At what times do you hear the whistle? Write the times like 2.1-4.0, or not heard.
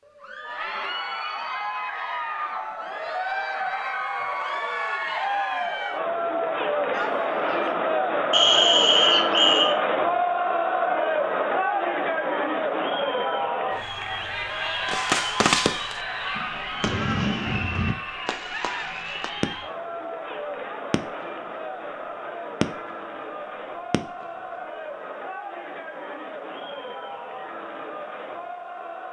8.3-9.8.